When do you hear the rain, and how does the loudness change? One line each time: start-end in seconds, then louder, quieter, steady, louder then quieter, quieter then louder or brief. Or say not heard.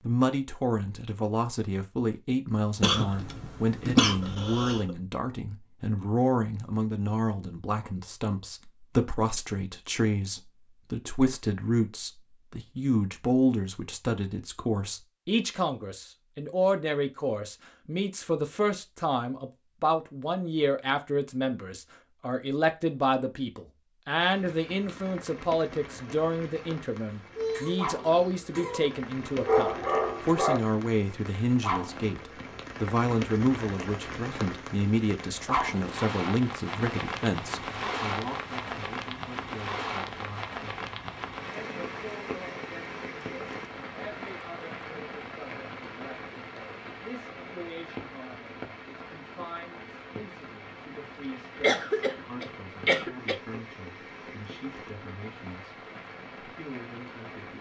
24.1-57.5 louder then quieter.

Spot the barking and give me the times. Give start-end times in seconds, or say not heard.
28.6-30.6.